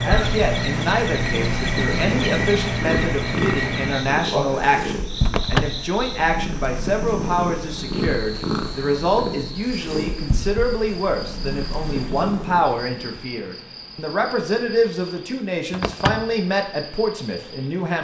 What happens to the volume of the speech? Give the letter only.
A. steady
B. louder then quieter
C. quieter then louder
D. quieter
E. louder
A.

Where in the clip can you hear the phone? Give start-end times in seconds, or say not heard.
not heard.